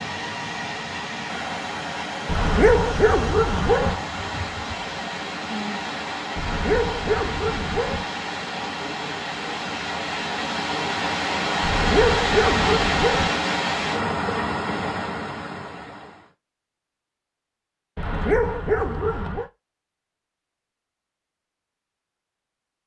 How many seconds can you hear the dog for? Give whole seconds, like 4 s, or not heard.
7 s.